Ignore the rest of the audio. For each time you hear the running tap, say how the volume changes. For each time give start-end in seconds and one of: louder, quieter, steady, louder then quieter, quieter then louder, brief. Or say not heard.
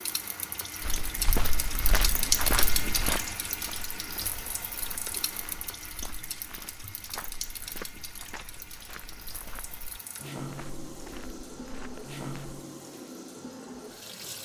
0.0-14.4 quieter.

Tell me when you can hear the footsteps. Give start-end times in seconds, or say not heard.
0.8-12.6.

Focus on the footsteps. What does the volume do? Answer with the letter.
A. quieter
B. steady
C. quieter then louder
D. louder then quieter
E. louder
A.